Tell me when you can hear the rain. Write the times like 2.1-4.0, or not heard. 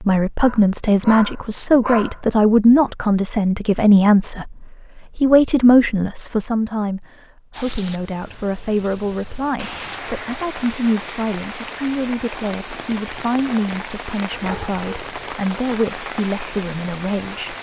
7.5-17.5.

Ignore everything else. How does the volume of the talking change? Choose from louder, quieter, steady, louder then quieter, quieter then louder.
quieter.